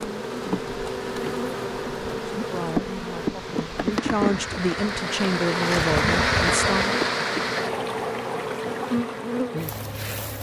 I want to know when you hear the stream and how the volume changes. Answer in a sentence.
The stream can be heard from 0.0 to 10.3 s, getting louder then quieter.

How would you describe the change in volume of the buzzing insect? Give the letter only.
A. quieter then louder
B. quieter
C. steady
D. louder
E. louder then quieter
C.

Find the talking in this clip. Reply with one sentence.
The talking can be heard from 2.4 to 7.0 s.